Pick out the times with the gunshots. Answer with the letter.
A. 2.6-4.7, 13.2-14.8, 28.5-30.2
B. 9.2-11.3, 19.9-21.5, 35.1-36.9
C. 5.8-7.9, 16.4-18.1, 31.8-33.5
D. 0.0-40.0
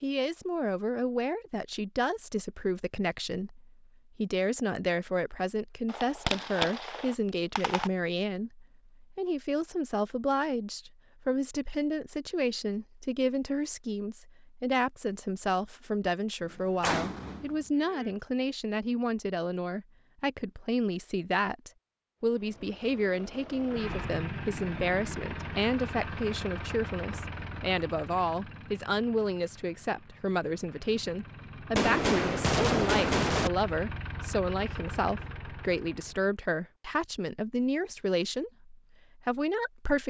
C.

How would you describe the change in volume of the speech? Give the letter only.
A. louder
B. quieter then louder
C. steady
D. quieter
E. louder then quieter
C.